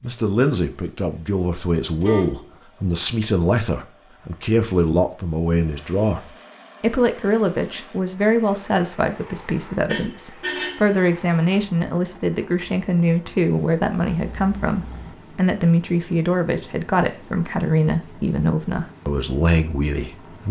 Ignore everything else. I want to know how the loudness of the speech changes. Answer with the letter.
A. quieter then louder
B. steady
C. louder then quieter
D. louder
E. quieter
B.